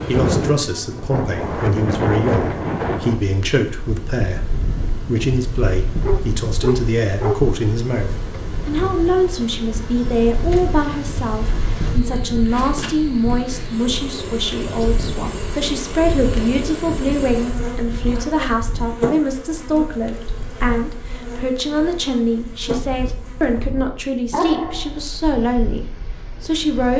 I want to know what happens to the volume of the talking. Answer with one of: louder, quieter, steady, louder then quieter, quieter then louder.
steady.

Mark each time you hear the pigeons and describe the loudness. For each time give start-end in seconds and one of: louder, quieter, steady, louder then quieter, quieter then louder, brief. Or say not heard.
not heard.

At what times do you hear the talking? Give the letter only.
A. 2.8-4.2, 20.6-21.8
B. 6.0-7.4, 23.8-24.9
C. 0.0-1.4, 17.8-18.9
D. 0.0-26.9
D.